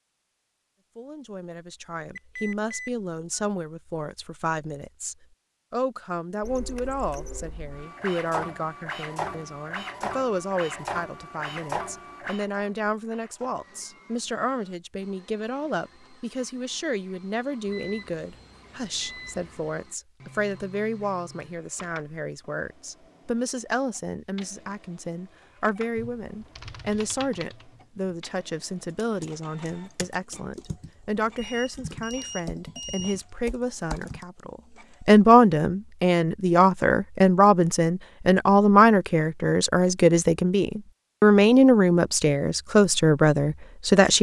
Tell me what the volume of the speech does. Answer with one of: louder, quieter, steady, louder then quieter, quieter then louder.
louder.